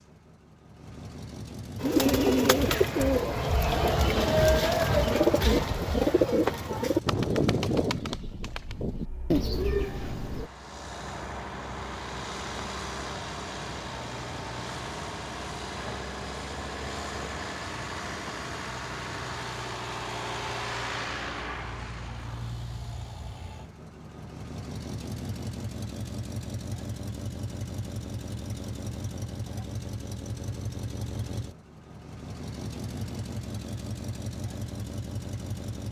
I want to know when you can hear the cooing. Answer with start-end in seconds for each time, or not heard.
1.8-10.5.